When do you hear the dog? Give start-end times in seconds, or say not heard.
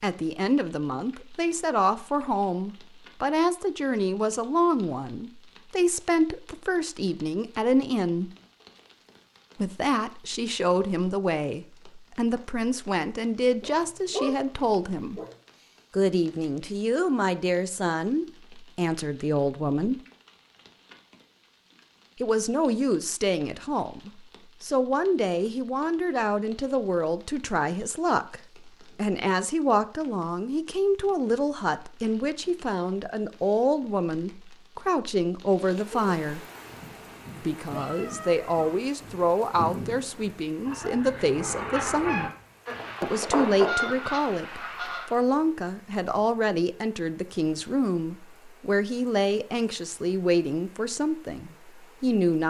13.6-15.3.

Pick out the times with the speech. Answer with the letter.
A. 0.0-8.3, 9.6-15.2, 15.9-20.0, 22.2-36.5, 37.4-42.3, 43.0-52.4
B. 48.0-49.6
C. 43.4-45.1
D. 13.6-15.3
A.